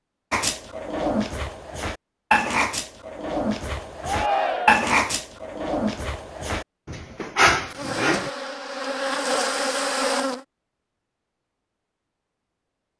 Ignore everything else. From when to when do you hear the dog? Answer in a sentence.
The dog can be heard from 0.3 to 8.3 s.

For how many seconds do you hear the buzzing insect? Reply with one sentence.
You can hear the buzzing insect for 3 seconds altogether.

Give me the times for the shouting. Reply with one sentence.
The shouting can be heard from 4.0 to 4.8 s.